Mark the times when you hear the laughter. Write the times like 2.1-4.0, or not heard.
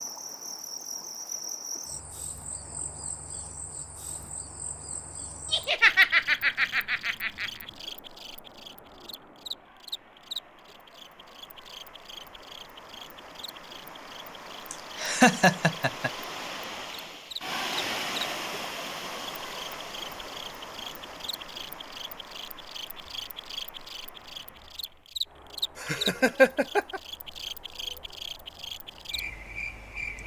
5.5-7.5, 14.7-16.1, 25.8-27.0.